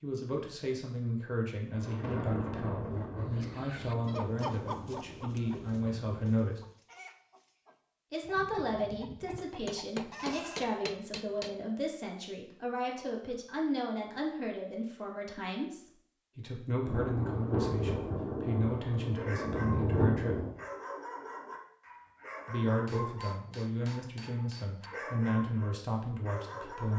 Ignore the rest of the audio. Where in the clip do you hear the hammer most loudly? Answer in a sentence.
The volume of the hammer peaks at 10 seconds.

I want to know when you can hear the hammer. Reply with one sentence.
You can hear the hammer from 9.3 to 11.6 s and from 22.9 to 24.9 s.